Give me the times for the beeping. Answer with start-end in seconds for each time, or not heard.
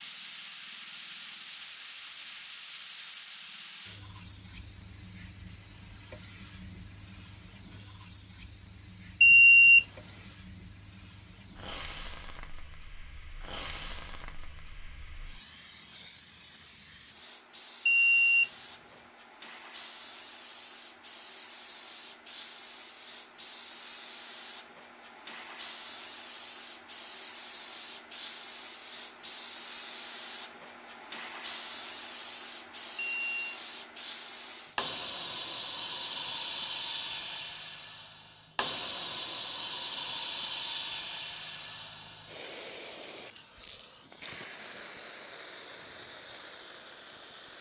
9.2-10.2, 17.9-18.9, 33.0-33.5.